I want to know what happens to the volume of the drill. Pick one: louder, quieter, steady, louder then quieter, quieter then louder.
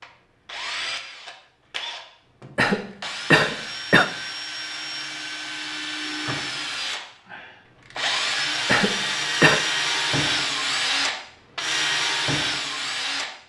louder.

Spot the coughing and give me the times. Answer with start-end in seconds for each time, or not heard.
2.5-4.1, 8.7-9.6.